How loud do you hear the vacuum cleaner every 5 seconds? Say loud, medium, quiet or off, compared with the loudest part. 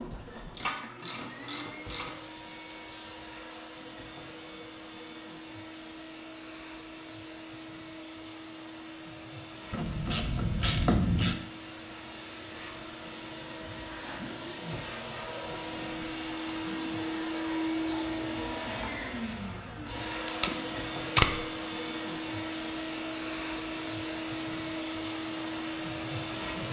medium, medium, medium, loud, loud, loud.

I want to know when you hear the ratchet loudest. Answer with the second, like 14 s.
11 s.